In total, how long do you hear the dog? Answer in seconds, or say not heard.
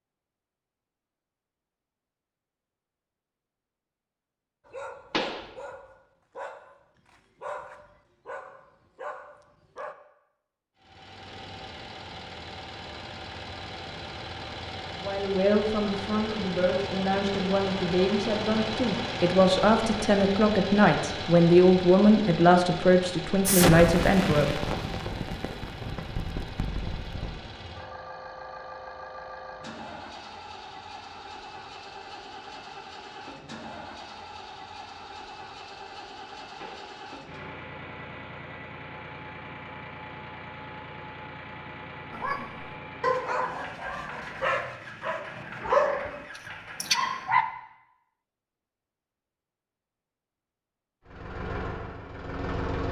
11 s.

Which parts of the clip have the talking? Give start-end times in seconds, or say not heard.
15.0-24.6.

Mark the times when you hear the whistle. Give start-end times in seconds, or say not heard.
not heard.